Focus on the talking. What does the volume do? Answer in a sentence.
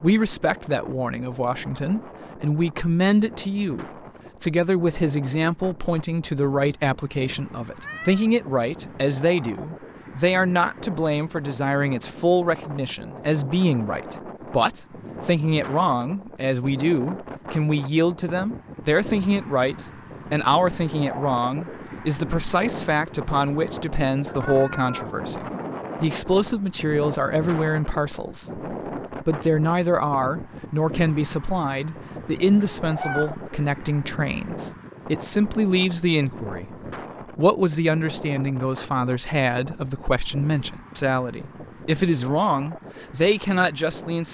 The volume of the talking stays about the same.